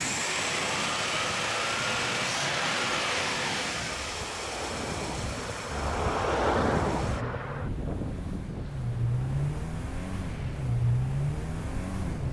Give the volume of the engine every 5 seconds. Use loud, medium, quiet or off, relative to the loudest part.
loud, medium, loud.